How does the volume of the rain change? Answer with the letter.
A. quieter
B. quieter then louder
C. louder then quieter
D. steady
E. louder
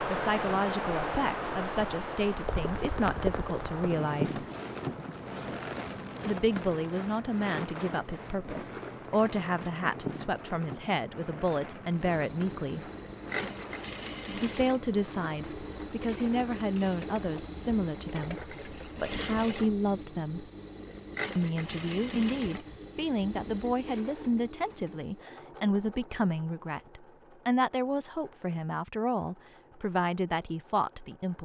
A.